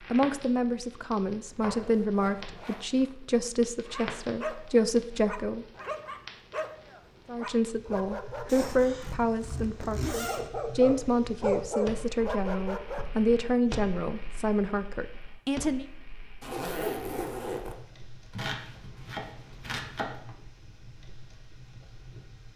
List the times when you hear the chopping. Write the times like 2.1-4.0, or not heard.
1.4-2.5, 18.3-20.2.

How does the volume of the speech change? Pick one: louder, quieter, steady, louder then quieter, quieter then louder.
steady.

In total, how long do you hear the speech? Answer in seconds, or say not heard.
14 s.